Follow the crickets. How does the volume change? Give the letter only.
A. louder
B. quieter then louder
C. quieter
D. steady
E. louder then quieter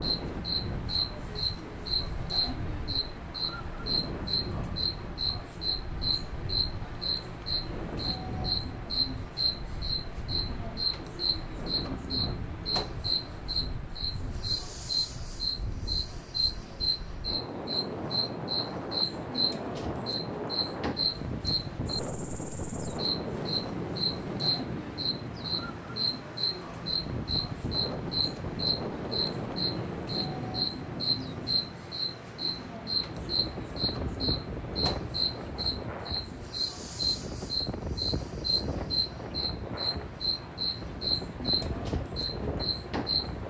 D.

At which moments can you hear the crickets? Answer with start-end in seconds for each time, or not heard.
0.0-43.4.